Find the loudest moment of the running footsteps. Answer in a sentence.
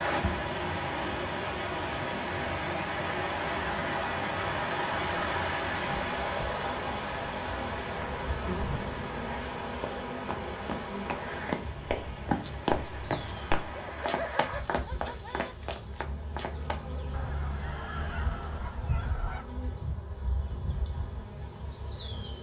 The volume of the running footsteps peaks at 13 seconds.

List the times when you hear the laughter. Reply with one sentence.
The laughter can be heard from 8.4 to 9.0 s and from 13.8 to 15.6 s.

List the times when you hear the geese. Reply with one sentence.
The geese can be heard from 17.1 to 19.4 s.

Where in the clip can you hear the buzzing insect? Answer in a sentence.
You can hear the buzzing insect from 5.8 to 22.3 s.